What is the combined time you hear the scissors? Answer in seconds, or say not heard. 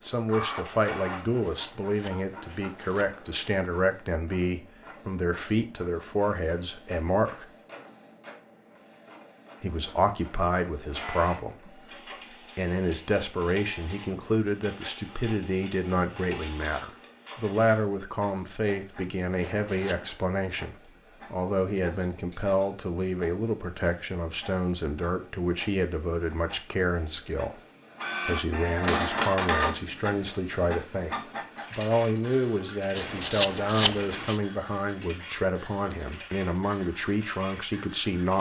5 s.